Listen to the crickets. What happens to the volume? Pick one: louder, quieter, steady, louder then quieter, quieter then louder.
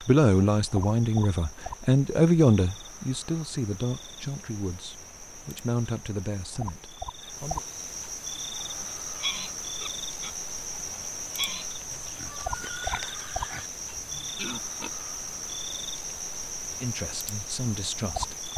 louder.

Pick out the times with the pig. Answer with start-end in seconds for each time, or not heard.
8.6-14.9.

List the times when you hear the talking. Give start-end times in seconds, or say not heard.
0.1-7.6, 16.8-18.4.